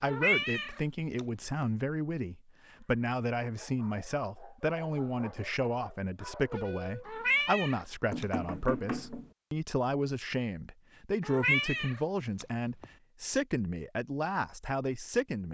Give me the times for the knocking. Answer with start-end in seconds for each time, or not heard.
8.1-9.3.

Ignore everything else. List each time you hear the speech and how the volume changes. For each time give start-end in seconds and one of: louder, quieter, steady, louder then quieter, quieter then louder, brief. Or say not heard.
0.0-15.4 steady.